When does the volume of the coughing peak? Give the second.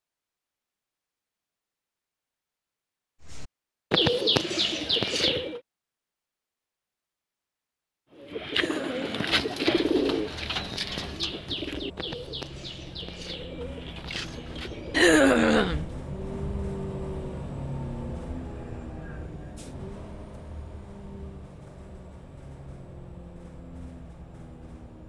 15 s.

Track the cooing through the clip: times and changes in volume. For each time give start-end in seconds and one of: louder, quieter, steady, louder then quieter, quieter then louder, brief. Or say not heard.
3.2-5.6 brief
8.1-15.9 quieter.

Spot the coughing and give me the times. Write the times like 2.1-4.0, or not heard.
8.5-9.3, 14.9-15.8.